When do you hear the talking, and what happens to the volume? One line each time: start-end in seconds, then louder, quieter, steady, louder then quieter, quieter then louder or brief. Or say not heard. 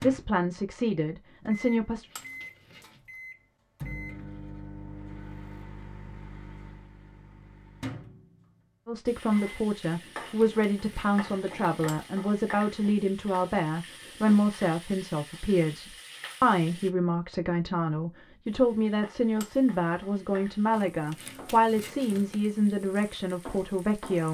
0.0-2.0 brief
8.8-24.2 steady.